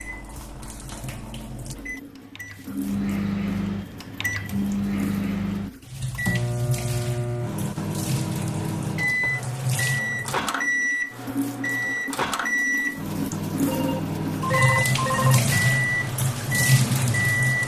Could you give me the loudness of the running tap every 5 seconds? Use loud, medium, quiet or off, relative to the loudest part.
quiet, medium, medium, loud.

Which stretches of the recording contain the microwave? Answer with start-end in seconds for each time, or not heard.
0.0-17.6.